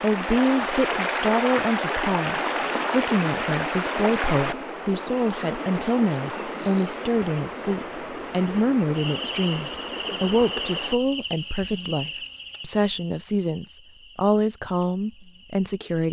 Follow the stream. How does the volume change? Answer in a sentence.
The volume of the stream goes down.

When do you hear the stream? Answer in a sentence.
You can hear the stream from 0.0 to 10.9 s.